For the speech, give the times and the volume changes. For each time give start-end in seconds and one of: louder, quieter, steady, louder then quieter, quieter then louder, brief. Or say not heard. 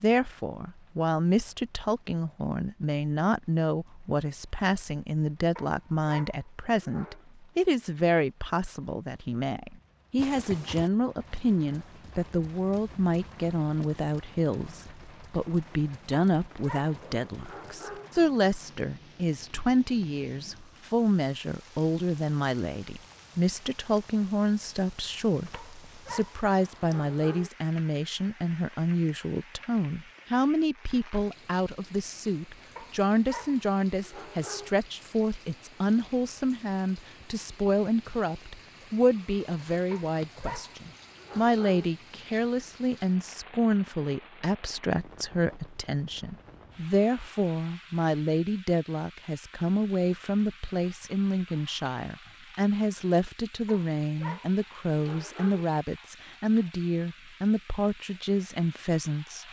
0.0-59.4 steady.